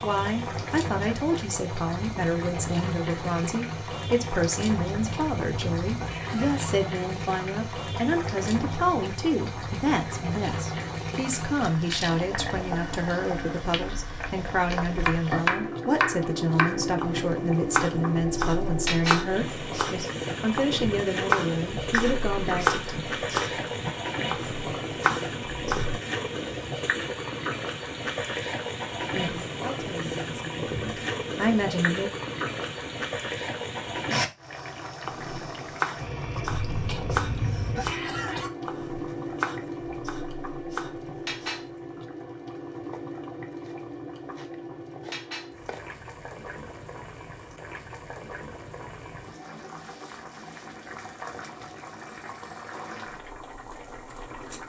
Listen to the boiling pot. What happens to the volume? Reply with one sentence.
The loudness of the boiling pot goes down.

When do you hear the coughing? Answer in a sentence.
You can hear the coughing from 4.9 to 6.7 s and from 36.5 to 38.5 s.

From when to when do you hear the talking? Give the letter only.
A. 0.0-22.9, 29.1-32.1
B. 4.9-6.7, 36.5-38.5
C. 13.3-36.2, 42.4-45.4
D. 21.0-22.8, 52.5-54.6
A.